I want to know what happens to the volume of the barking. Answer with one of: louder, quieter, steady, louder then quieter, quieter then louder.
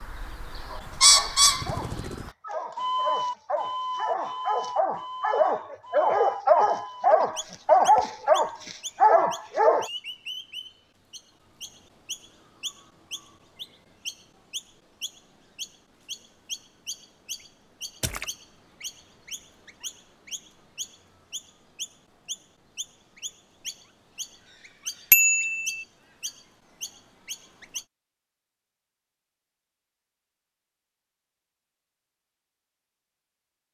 louder.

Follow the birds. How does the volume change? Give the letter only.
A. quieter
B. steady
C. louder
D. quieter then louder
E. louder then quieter
A.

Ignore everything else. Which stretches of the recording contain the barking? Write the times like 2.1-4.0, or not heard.
0.7-9.9.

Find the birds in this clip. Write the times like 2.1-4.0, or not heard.
0.0-27.9.